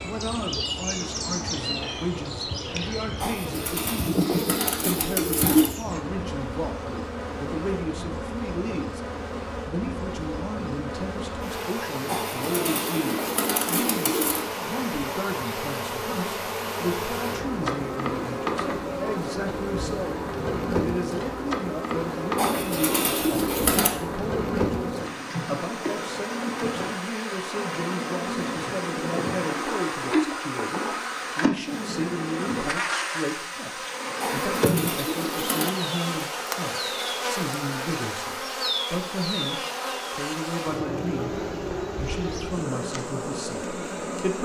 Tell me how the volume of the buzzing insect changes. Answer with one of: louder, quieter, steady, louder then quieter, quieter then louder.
steady.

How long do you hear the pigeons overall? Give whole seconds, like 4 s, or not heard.
8 s.